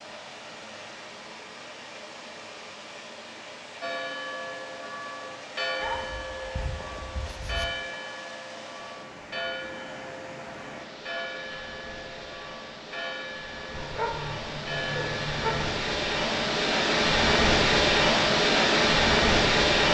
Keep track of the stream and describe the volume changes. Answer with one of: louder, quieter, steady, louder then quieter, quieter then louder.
louder.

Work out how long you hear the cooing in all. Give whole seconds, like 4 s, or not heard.
not heard.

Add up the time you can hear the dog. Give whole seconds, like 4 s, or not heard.
4 s.